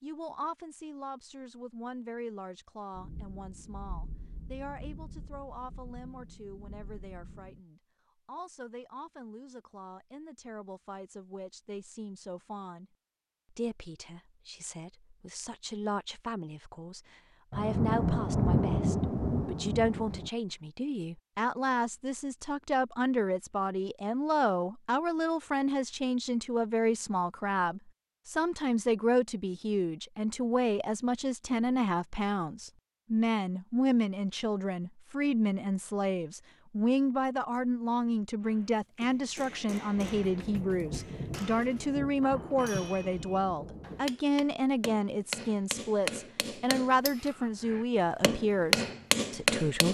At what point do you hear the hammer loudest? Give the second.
49 s.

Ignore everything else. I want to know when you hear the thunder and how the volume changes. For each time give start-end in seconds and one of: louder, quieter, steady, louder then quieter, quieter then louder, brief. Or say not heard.
2.9-7.6 steady
17.5-20.3 brief
40.0-44.1 quieter.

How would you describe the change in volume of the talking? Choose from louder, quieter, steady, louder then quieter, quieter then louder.
louder.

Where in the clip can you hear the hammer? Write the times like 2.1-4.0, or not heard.
38.4-49.9.